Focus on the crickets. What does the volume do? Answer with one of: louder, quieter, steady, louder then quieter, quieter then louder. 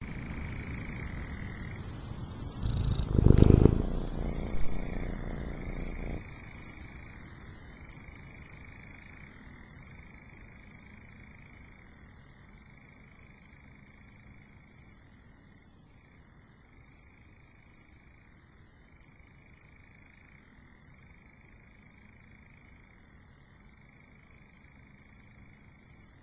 quieter.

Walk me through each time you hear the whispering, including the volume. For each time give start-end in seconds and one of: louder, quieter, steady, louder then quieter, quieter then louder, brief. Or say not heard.
not heard.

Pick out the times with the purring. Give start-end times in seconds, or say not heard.
2.6-6.2.